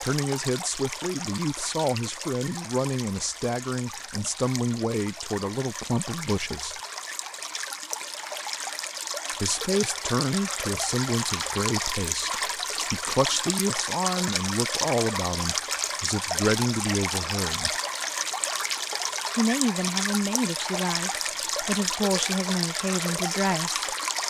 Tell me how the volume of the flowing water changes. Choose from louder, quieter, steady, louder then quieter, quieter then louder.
louder.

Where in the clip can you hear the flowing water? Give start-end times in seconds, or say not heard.
0.0-24.2.